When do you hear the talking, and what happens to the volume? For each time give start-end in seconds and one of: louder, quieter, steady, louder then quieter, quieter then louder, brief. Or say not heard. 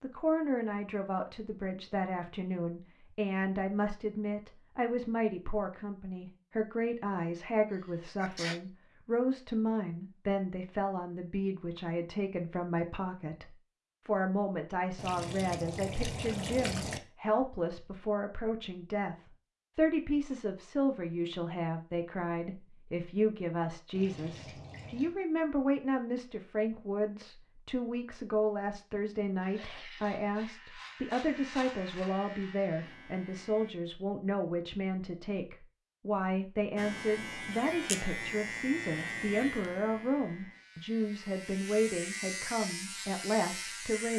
0.0-44.1 steady.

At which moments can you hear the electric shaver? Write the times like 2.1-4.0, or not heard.
29.4-33.8, 36.8-44.1.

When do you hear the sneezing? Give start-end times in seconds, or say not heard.
7.7-8.6, 29.1-30.1.